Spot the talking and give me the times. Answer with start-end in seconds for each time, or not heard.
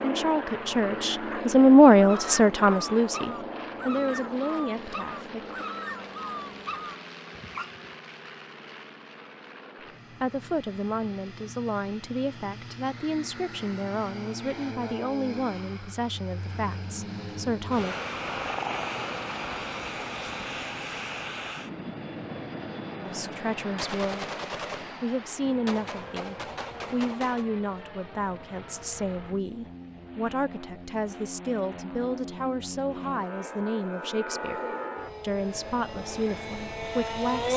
0.0-5.6, 10.2-17.9, 23.0-34.6, 35.2-37.5.